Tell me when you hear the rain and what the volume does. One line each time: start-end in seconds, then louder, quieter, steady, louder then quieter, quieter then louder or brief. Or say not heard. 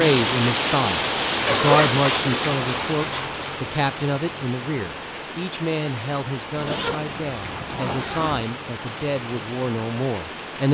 0.0-10.6 quieter.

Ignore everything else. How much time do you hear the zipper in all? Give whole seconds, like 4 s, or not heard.
4 s.